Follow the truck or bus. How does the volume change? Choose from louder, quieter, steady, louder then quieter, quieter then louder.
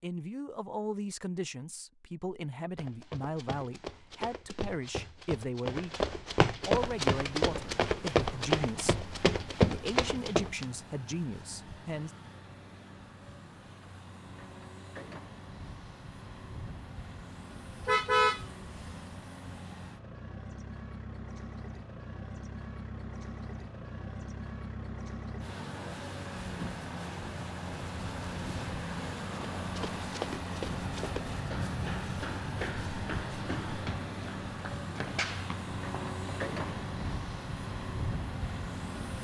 louder.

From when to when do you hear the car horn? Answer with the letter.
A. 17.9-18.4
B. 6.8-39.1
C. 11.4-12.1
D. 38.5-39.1
A.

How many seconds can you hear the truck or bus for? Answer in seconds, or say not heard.
32 s.